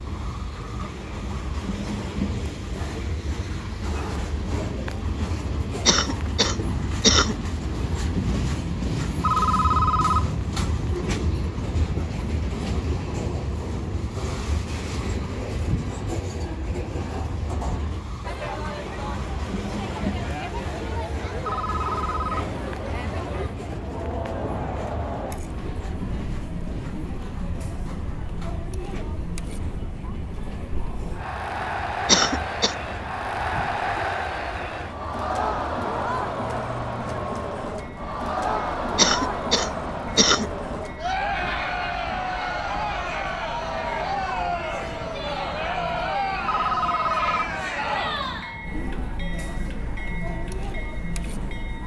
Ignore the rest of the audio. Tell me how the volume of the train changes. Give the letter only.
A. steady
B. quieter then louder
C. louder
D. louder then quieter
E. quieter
E.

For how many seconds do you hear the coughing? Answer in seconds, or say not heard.
4 s.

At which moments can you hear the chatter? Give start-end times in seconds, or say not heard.
18.2-51.8.